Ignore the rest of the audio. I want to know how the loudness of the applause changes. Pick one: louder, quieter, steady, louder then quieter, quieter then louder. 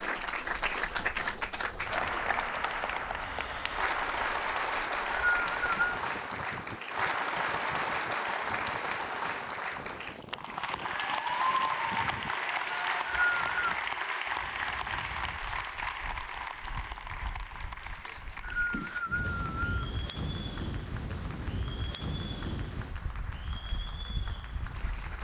quieter.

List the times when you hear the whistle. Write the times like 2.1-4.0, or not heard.
4.7-6.0, 12.7-13.8, 18.1-19.7.